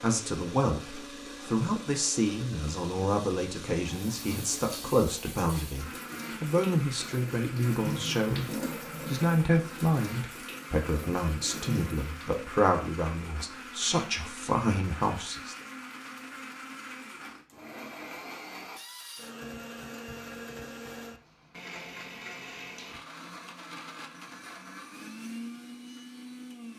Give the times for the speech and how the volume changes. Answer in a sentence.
The speech can be heard from 0.0 to 15.6 s, at a steady volume.